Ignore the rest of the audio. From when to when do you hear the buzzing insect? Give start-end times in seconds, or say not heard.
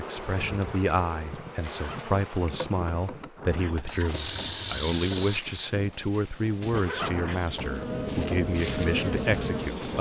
0.0-3.5, 7.4-9.9.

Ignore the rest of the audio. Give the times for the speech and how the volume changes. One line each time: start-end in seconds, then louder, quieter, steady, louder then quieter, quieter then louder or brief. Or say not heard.
0.0-9.9 steady.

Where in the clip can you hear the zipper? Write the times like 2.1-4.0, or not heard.
1.6-2.1, 6.7-7.3.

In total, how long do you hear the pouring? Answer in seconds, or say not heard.
2 s.